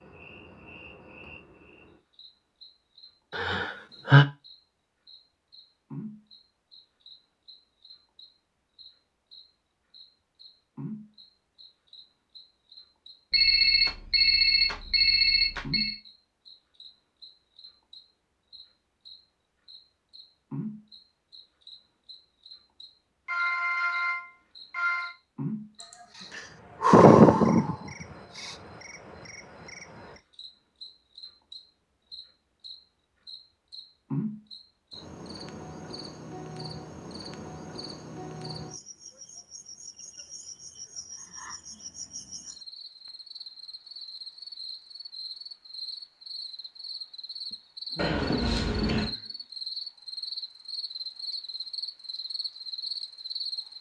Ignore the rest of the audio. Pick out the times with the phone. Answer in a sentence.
The phone can be heard from 13.3 to 15.9 s, from 23.2 to 25.1 s and from 48.0 to 49.1 s.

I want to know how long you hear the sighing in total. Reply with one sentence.
You can hear the sighing for 4 seconds altogether.